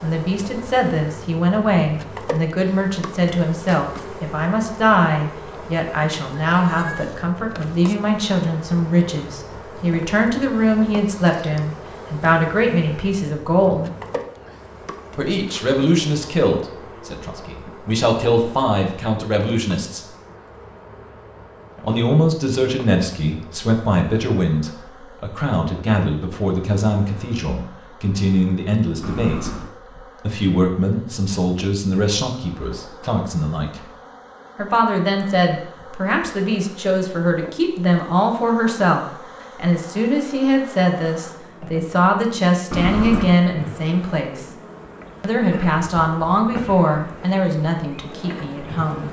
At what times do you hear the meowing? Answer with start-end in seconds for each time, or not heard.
6.5-7.2, 29.0-29.7, 42.7-43.4.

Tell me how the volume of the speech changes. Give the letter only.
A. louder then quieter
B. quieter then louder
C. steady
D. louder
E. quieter
C.